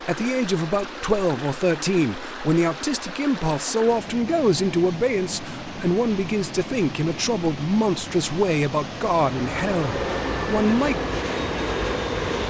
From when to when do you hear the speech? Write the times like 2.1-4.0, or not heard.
0.0-11.0.